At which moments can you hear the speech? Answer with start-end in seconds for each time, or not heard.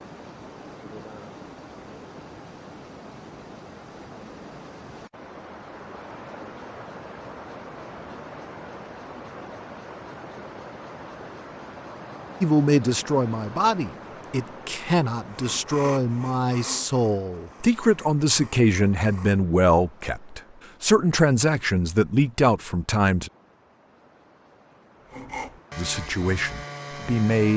12.4-23.3, 25.8-27.5.